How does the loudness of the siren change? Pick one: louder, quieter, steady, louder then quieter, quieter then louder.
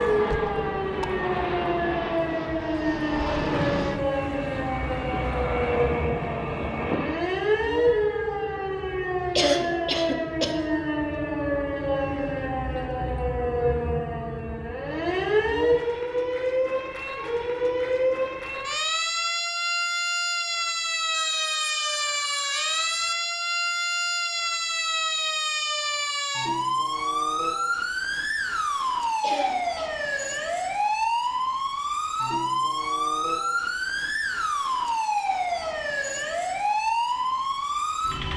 steady.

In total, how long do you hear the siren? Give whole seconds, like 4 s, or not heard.
38 s.